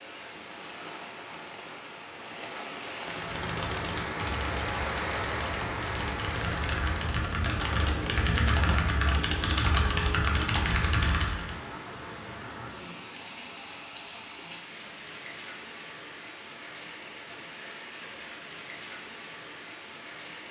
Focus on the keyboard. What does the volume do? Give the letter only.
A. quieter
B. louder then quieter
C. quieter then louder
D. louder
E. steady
D.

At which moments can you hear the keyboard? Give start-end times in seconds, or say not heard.
3.0-11.6.